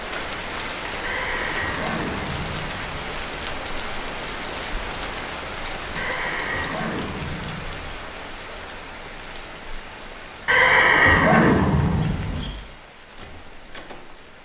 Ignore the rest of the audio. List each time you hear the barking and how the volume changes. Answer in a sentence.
You can't hear the barking here.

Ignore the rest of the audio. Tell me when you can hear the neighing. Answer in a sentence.
You can hear the neighing from 1.0 to 3.0 s, from 6.0 to 8.0 s and from 10.4 to 12.5 s.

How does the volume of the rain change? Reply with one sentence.
The loudness of the rain goes down.